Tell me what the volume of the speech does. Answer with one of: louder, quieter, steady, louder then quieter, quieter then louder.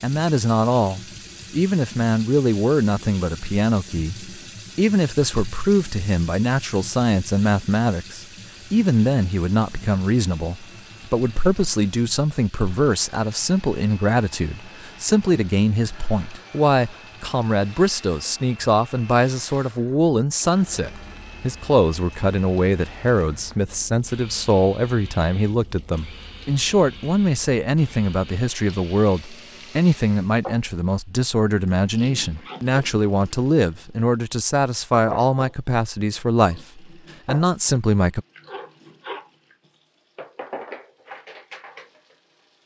steady.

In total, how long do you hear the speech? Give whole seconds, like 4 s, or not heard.
38 s.